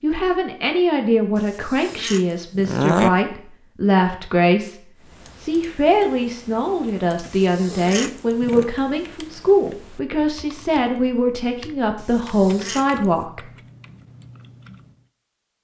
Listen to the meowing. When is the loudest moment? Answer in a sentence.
The volume of the meowing peaks at 3 seconds.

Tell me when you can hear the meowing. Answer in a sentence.
The meowing can be heard from 1.4 to 3.1 s, from 7.2 to 8.7 s and from 11.9 to 13.2 s.